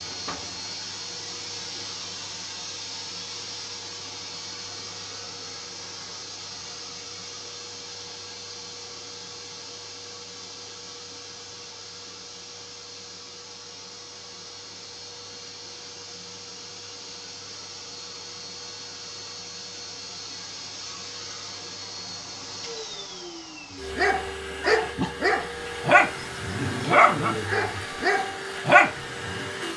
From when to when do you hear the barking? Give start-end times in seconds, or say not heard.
23.9-29.4.